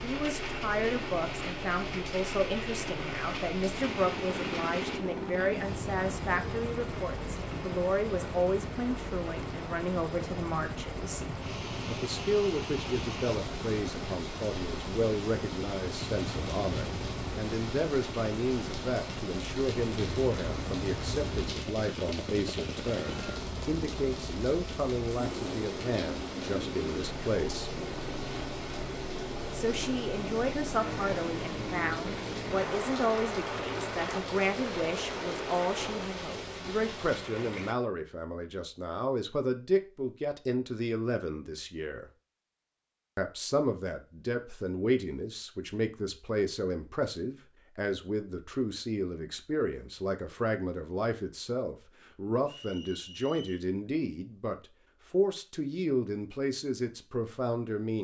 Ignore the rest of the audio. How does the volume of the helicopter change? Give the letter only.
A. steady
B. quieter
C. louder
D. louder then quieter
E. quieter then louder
A.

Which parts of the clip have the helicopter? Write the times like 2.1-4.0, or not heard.
0.0-36.3.